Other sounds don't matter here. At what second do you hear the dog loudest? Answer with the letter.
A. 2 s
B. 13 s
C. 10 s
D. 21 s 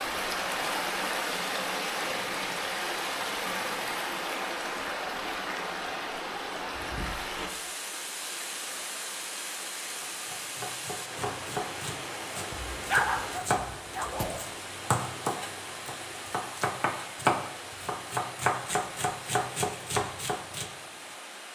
B.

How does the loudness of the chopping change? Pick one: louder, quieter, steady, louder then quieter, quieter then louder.
louder.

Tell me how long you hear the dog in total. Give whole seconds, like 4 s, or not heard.
2 s.